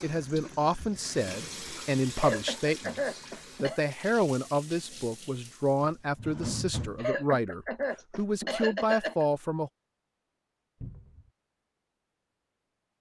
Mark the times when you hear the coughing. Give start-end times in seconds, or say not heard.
2.1-3.8, 7.0-9.2.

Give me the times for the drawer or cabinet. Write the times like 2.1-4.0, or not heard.
1.3-1.8, 5.8-7.0, 10.8-11.3.